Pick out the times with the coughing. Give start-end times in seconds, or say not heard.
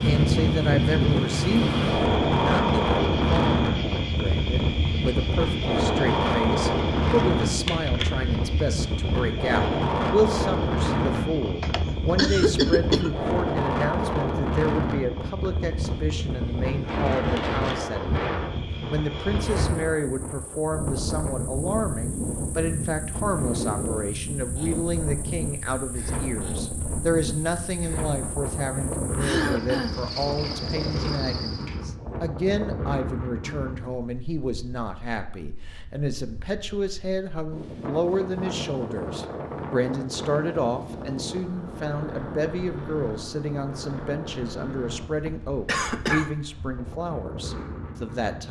11.6-13.1, 29.2-29.9, 45.1-46.3.